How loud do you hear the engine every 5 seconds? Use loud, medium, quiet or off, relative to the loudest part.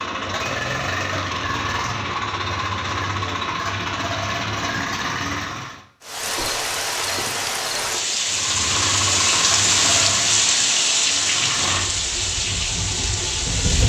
loud, loud, medium.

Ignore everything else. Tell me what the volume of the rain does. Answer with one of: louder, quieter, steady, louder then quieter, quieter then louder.
louder then quieter.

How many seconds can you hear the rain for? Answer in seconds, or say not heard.
8 s.